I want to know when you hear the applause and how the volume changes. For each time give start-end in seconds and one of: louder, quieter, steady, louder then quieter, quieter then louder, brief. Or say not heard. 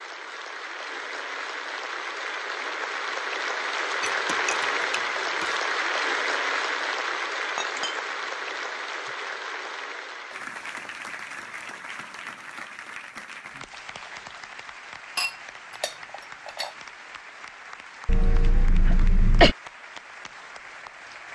0.0-21.2 quieter.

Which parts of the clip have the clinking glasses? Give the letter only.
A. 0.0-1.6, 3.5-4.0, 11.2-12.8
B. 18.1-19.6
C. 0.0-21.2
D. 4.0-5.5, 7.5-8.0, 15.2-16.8
D.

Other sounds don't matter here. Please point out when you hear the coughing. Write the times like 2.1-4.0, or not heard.
18.1-19.6.